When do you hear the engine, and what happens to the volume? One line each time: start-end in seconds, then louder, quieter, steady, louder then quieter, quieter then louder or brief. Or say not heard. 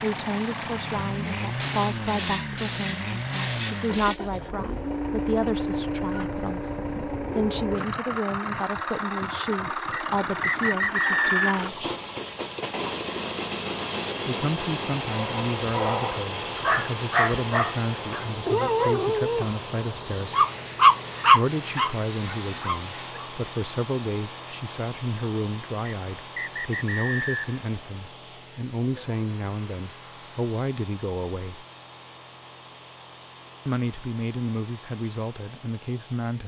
0.0-36.4 quieter.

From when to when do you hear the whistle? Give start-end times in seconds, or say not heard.
9.9-11.7, 25.9-27.6.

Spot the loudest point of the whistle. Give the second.
11 s.